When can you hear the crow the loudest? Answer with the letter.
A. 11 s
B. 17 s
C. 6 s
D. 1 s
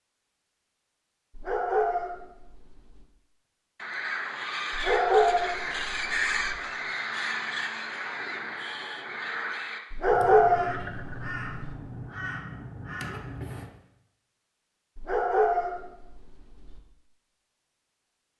C.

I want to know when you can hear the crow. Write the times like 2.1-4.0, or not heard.
3.8-13.7.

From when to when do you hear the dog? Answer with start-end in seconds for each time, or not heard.
1.3-3.0, 4.7-6.6, 9.9-11.8, 14.9-16.8.